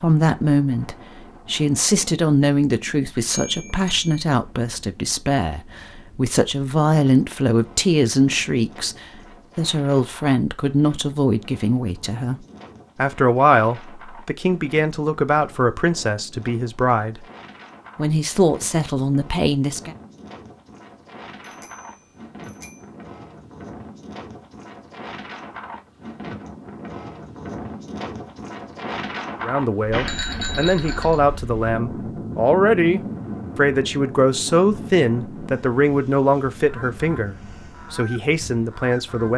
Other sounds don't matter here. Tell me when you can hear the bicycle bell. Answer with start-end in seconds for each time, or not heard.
3.3-4.1, 21.4-22.9, 29.9-31.2.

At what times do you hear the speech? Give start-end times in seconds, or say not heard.
0.0-17.2, 17.9-19.9, 29.4-39.3.